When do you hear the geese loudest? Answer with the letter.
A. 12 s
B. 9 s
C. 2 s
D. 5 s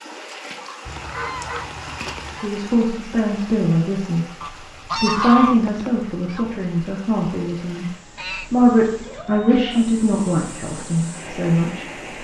D.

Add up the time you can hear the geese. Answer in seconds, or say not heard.
5 s.